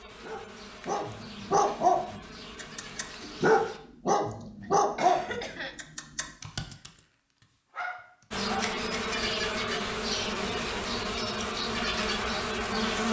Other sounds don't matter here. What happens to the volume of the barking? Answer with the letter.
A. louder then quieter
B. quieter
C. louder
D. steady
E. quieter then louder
B.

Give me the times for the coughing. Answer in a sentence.
The coughing can be heard from 4.6 to 5.8 s.